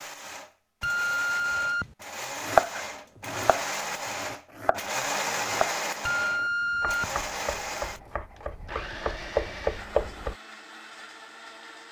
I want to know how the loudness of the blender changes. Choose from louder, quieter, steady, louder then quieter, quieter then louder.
louder then quieter.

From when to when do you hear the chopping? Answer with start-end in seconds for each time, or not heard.
2.4-10.3.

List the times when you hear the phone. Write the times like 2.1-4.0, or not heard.
0.8-1.9, 6.0-7.2.